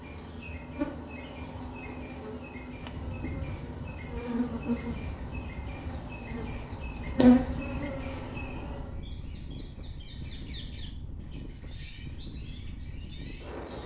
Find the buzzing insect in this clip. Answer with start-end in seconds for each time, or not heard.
0.0-9.0.